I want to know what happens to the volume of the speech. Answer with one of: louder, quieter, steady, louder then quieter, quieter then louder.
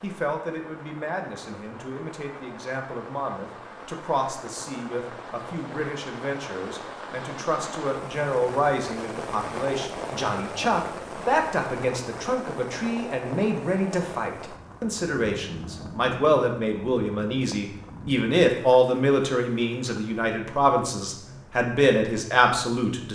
louder.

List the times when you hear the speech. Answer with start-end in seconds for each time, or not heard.
0.0-23.0.